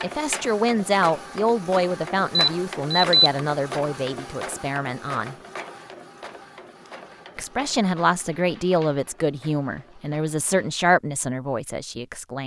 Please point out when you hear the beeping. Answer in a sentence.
The beeping can be heard from 2.4 to 3.3 s.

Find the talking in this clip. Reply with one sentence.
The talking can be heard from 0.0 to 5.3 s and from 7.3 to 12.4 s.